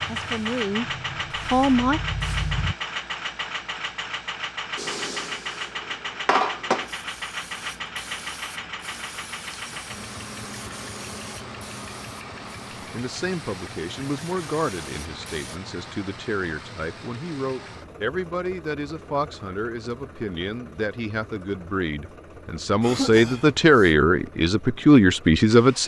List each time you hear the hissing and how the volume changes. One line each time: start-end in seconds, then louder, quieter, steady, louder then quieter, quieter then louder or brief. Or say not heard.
0.0-2.8 brief
4.8-15.6 quieter.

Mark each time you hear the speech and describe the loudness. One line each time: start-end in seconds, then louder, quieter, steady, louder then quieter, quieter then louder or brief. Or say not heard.
0.1-2.0 brief
12.9-25.8 louder.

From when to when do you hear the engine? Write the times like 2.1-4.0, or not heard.
0.0-25.8.